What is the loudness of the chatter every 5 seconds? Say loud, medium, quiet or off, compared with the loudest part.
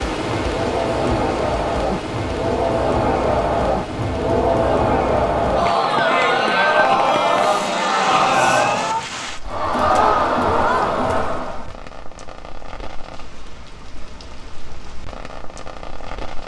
loud, loud, loud, off.